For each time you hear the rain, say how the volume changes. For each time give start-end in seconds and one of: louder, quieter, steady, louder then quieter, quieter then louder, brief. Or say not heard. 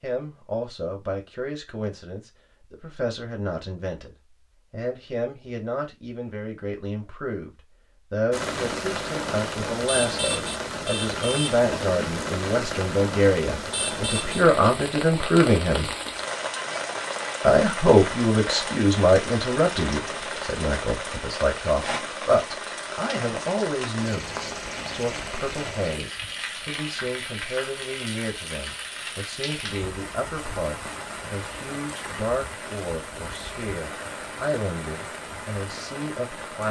8.3-36.6 quieter.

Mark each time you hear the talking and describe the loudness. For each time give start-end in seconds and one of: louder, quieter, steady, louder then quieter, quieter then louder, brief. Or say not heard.
0.0-15.9 louder
17.4-36.6 quieter.